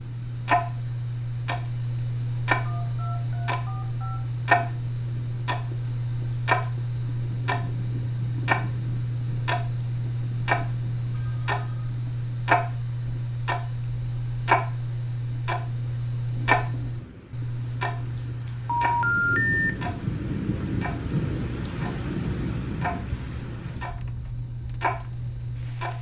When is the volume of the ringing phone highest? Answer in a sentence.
The loudest moment of the ringing phone is at 19 seconds.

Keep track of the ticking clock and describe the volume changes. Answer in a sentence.
The loudness of the ticking clock goes down.